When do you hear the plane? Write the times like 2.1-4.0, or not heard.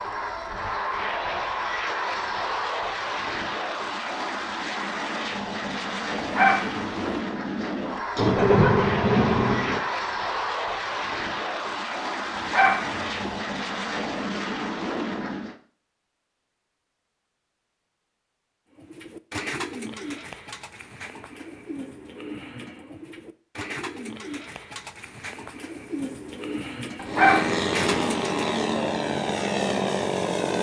0.0-15.6, 27.1-30.5.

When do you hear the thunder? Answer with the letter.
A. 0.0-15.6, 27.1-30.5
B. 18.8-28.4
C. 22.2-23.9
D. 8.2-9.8
D.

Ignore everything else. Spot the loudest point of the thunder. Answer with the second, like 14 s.
9 s.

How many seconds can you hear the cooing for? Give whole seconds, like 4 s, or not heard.
10 s.